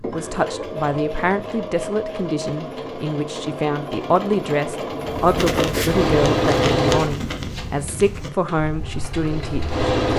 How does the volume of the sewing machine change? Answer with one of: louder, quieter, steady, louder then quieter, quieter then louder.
louder then quieter.